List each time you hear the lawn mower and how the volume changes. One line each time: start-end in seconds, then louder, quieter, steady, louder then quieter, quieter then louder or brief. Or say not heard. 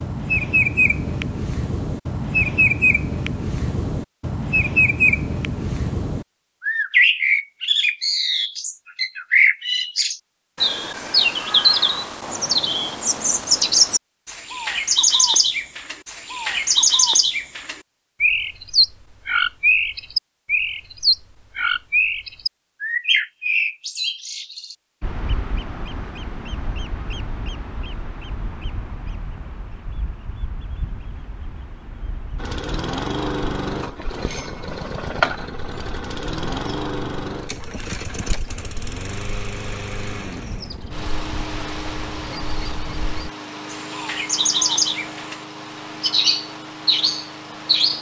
32.4-47.9 quieter.